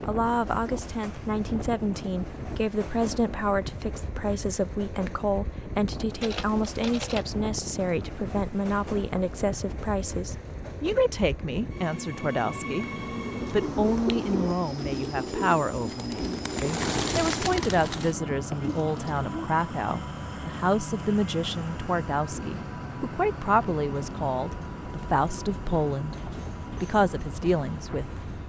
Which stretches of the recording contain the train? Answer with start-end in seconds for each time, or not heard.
0.0-28.4.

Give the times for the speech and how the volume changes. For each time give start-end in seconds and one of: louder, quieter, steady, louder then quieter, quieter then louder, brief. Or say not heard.
0.1-12.9 steady
13.5-28.2 steady.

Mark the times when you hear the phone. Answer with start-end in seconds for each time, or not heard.
6.2-7.2.